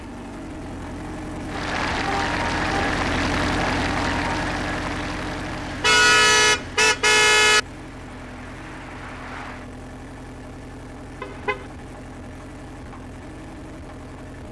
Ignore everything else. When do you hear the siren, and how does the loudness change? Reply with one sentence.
The siren can't be heard in this clip.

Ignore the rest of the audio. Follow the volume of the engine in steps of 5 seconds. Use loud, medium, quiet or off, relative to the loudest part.
loud, medium, medium.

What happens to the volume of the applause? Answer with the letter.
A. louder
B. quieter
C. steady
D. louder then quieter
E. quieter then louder
B.